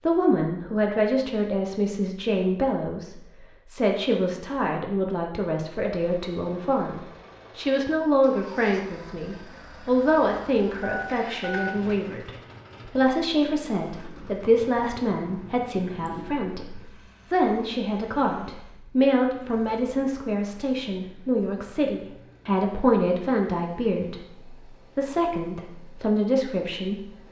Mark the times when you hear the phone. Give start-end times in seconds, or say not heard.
10.8-11.8, 15.8-16.4.